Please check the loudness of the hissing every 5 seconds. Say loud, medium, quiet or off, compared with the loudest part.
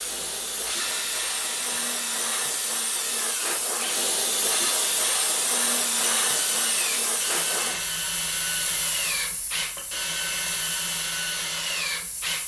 loud, loud, medium.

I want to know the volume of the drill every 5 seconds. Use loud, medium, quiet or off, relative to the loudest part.
medium, loud, loud.